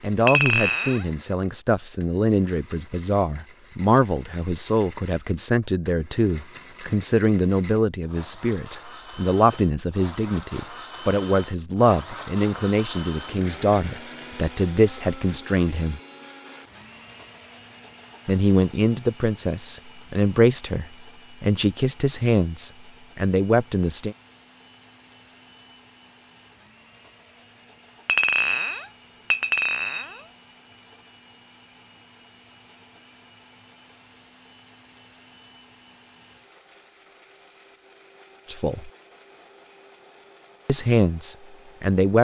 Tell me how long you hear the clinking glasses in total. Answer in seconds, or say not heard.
3 s.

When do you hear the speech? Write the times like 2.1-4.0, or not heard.
0.0-16.0, 18.2-24.1, 38.5-38.9, 40.6-42.1.